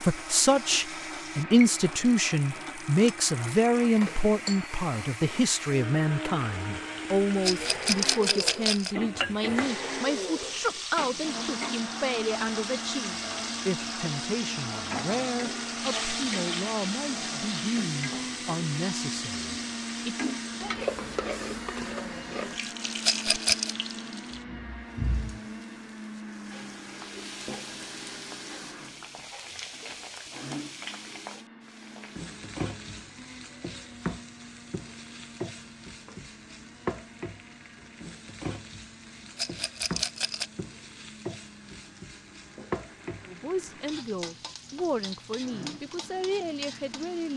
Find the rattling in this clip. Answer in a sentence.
The rattling can be heard from 7.4 to 8.9 s, from 23.0 to 23.8 s and from 39.4 to 40.5 s.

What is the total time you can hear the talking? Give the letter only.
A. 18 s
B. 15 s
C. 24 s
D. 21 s
C.